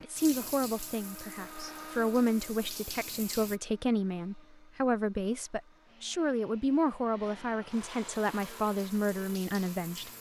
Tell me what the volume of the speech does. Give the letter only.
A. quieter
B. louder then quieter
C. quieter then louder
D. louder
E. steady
E.